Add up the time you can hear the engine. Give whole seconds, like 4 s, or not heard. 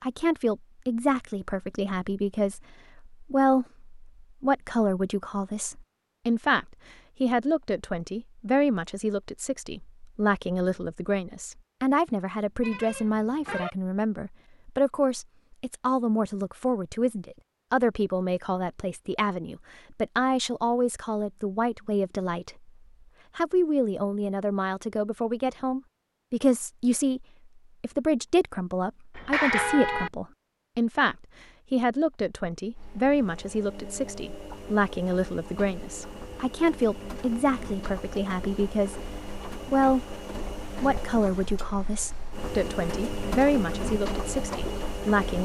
13 s.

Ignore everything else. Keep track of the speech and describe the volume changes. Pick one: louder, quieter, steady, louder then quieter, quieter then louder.
steady.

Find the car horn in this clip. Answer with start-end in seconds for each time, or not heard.
12.6-13.7, 29.1-30.1.